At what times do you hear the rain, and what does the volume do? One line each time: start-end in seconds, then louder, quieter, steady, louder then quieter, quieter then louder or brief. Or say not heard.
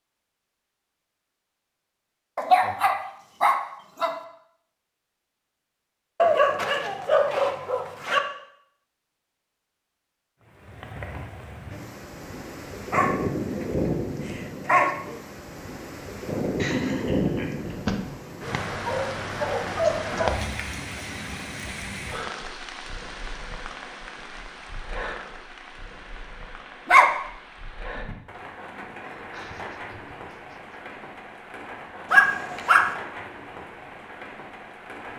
10.4-35.1 quieter.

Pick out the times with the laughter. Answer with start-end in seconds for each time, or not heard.
2.4-2.9, 16.6-17.8, 29.1-30.8.